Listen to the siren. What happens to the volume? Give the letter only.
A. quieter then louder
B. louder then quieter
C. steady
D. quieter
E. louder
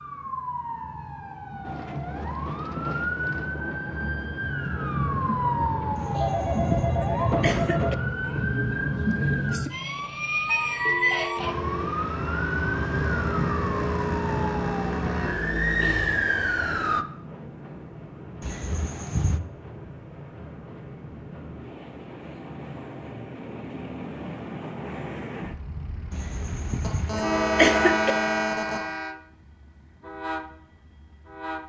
E.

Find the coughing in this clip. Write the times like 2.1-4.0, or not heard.
6.0-8.0, 18.4-19.4, 26.1-28.1.